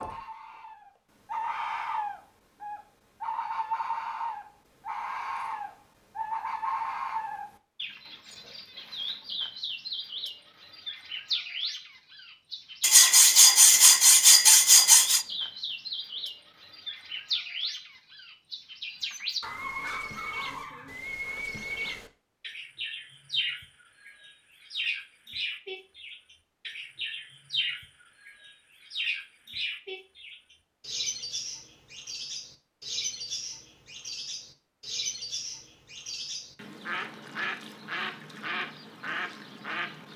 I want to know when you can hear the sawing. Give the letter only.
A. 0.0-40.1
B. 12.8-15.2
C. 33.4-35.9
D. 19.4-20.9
B.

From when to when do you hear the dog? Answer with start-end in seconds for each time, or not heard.
19.4-20.9.